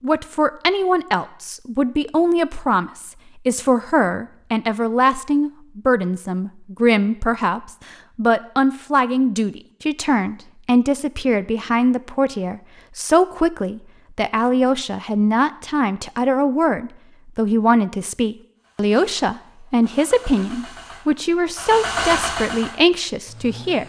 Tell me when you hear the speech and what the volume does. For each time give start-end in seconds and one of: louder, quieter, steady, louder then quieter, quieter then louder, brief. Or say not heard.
0.0-23.8 steady.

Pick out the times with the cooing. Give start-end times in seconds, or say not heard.
not heard.